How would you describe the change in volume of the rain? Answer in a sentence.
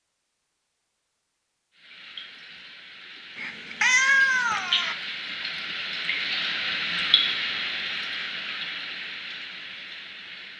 The loudness of the rain goes up, then down.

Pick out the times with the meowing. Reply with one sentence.
You can hear the meowing from 3.4 to 5.0 s.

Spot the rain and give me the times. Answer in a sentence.
You can hear the rain from 1.8 to 10.5 s.